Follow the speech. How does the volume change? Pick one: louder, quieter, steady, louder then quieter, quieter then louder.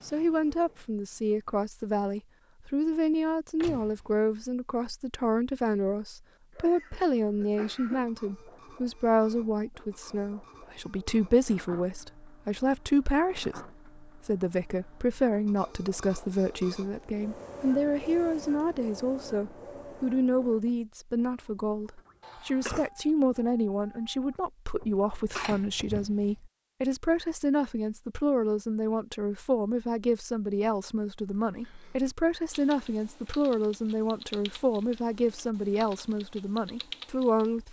steady.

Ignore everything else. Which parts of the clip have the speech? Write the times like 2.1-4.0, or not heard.
0.0-37.6.